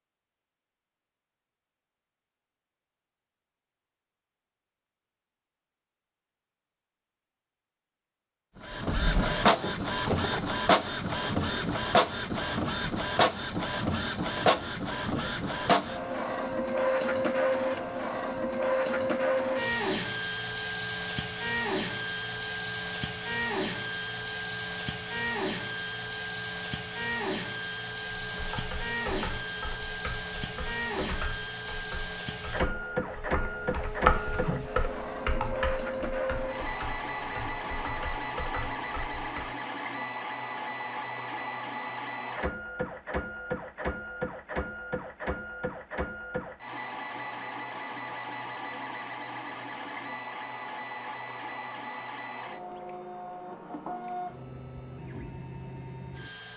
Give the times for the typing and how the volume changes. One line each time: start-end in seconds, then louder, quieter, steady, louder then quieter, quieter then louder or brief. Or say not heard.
28.1-39.5 louder then quieter.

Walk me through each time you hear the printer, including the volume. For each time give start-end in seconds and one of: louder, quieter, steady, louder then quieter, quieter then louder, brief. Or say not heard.
8.6-56.5 quieter.